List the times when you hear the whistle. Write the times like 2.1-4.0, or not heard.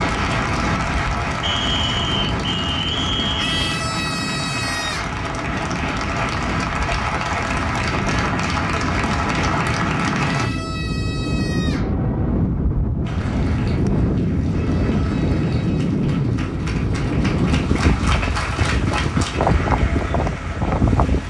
1.4-3.8.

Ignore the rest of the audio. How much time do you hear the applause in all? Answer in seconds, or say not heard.
19 s.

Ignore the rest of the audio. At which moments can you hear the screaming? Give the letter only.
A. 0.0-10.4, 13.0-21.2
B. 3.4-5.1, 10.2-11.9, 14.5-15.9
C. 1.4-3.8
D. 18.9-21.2
B.